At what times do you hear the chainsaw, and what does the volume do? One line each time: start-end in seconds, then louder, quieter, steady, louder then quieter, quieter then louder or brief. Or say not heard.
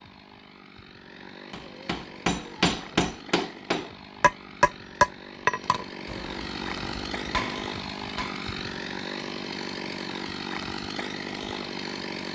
0.0-12.3 louder.